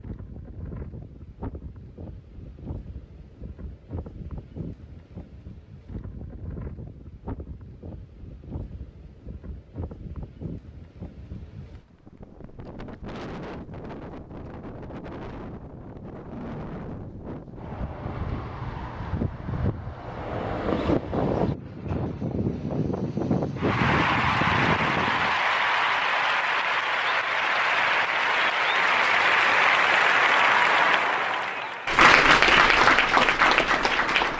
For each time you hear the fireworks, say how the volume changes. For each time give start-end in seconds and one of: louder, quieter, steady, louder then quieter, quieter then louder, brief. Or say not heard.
not heard.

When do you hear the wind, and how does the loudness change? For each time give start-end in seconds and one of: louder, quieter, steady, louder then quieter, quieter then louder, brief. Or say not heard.
0.0-25.4 louder.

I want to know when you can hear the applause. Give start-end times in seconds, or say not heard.
23.6-34.3.